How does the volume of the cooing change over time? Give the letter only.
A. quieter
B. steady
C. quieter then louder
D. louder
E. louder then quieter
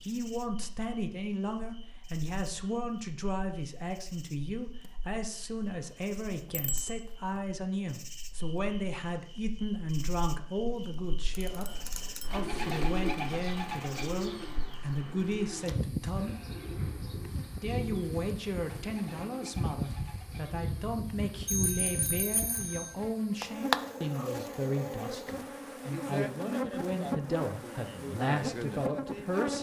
A.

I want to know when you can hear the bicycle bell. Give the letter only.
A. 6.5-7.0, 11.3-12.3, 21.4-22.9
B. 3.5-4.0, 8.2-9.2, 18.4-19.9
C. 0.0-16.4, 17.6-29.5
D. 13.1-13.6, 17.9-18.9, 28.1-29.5
A.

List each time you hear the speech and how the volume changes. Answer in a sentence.
You can hear the speech from 0.0 to 16.4 s, at a steady volume; and from 17.6 to 29.5 s, at a steady volume.